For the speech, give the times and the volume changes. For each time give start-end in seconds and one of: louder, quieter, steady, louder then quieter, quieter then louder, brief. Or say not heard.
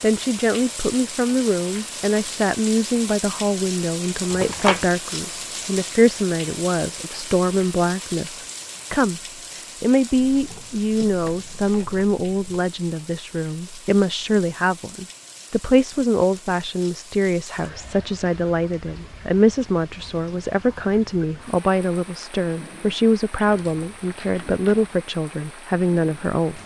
0.0-9.2 steady
9.8-26.6 steady.